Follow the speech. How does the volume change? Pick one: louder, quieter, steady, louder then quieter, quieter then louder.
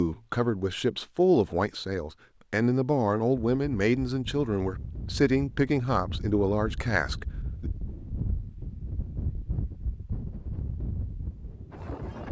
steady.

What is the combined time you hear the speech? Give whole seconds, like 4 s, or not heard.
8 s.